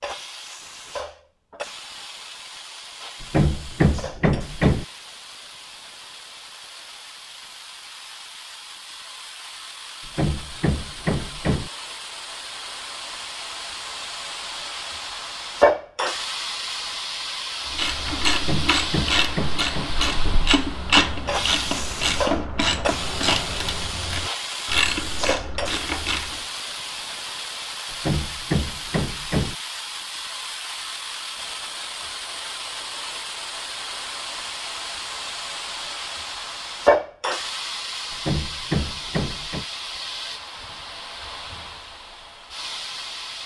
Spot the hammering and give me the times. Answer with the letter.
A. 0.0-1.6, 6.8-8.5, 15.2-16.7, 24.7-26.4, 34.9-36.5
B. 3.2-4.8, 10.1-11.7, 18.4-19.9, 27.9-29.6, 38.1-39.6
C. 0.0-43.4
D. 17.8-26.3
B.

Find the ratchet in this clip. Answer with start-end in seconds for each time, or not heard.
17.8-26.3.